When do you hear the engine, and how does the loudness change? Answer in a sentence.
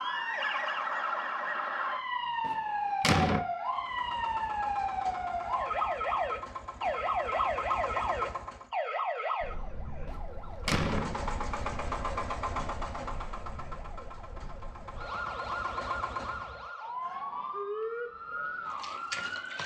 You can hear the engine from 3.6 to 8.7 s, getting louder; and from 10.8 to 16.6 s, getting quieter then louder.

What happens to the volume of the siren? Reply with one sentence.
The volume of the siren goes down, then up.